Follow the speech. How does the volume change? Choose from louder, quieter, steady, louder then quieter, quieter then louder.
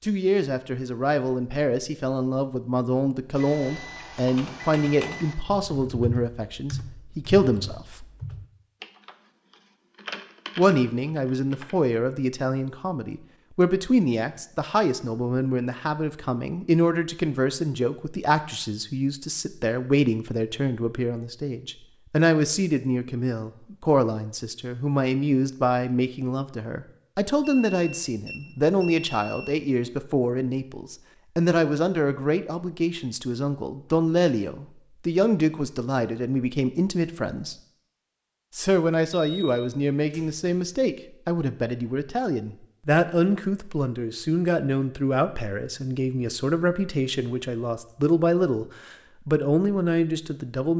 steady.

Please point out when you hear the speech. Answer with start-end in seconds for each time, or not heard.
0.0-8.1, 10.6-37.5, 38.5-50.7.